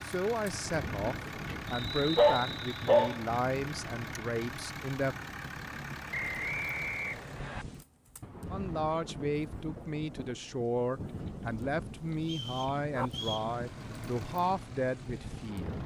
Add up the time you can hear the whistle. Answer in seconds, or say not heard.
4 s.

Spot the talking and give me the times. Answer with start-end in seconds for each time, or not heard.
0.0-5.2, 8.5-15.8.